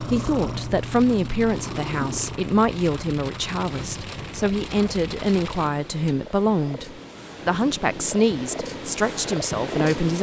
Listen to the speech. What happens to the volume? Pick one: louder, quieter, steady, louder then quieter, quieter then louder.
steady.